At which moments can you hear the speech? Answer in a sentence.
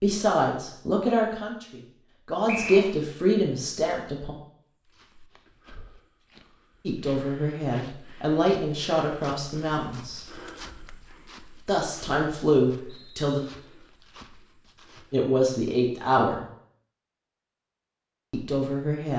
The speech can be heard from 0.0 to 4.3 s, from 6.8 to 10.2 s, from 11.7 to 13.4 s, from 15.1 to 16.4 s and from 18.3 to 19.1 s.